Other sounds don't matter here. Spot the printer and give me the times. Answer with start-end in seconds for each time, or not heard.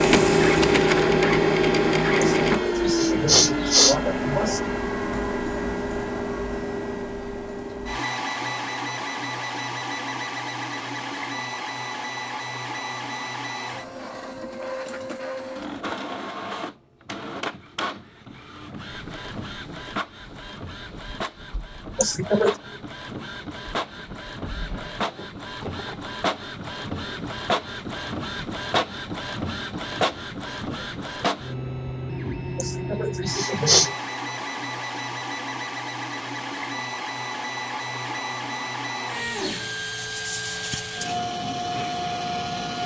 0.0-42.8.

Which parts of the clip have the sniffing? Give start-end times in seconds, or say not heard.
2.2-4.6, 21.9-22.6, 32.5-34.0.